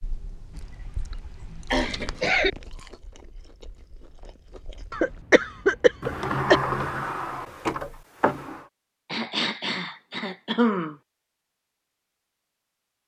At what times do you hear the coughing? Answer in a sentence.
The coughing can be heard from 0.6 to 2.5 s, from 4.9 to 6.6 s and from 9.1 to 10.9 s.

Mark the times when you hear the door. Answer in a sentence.
You can hear the door from 6.0 to 8.7 s.